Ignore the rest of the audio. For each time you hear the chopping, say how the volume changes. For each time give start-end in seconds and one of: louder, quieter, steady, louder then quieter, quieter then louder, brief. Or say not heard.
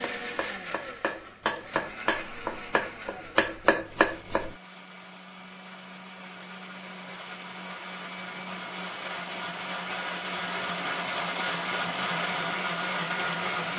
0.0-4.5 louder.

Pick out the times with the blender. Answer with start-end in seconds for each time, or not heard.
0.0-13.7.